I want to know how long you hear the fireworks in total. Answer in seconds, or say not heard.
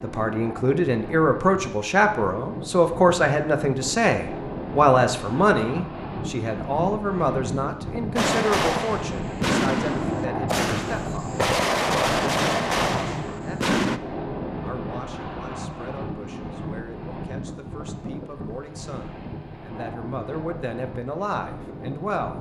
6 s.